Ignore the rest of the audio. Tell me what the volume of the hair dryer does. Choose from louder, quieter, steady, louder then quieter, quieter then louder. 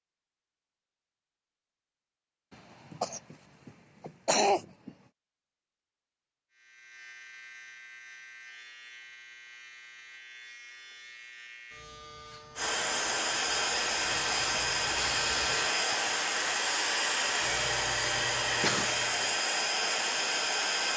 steady.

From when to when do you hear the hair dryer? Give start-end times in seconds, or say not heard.
12.6-20.9.